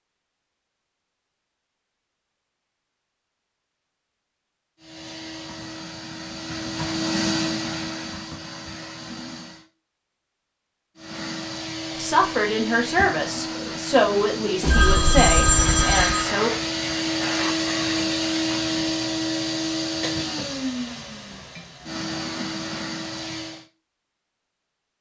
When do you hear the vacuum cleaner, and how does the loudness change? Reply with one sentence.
You can hear the vacuum cleaner from 4.8 to 9.7 s, getting louder then quieter; and from 10.9 to 23.6 s, getting louder then quieter.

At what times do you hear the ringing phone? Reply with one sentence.
You can hear the ringing phone from 14.6 to 16.2 s.